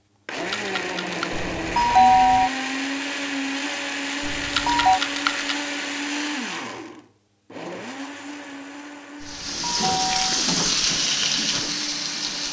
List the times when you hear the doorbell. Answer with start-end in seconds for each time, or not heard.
1.3-2.5, 4.2-5.0, 9.2-10.4.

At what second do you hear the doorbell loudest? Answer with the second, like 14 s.
2 s.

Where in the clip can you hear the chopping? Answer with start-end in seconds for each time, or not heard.
not heard.